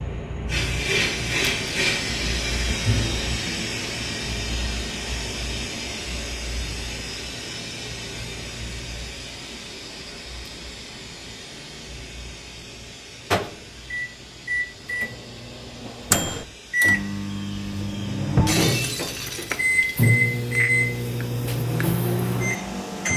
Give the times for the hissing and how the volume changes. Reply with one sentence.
You can hear the hissing from 0.0 to 23.1 s, getting quieter.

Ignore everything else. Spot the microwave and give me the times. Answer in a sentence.
You can hear the microwave from 13.3 to 23.1 s.